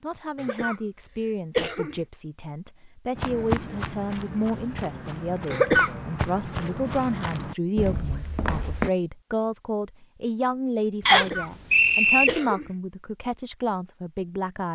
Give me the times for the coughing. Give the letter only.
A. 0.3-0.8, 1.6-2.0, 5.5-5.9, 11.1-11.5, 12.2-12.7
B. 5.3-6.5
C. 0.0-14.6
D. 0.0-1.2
A.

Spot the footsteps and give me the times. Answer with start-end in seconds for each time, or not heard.
3.1-8.9.